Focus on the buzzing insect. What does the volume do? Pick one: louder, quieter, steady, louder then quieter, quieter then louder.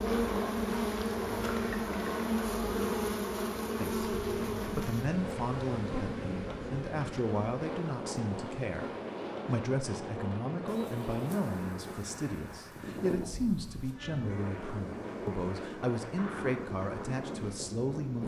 quieter.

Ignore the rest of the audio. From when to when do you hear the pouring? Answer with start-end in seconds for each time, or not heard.
not heard.